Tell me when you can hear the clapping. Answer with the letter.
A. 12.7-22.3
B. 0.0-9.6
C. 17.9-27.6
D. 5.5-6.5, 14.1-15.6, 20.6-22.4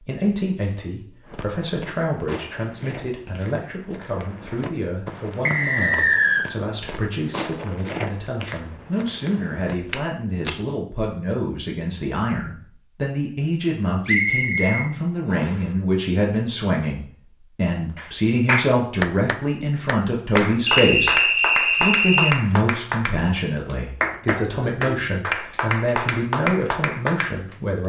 C.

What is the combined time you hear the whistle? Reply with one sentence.
You can hear the whistle for 4 seconds altogether.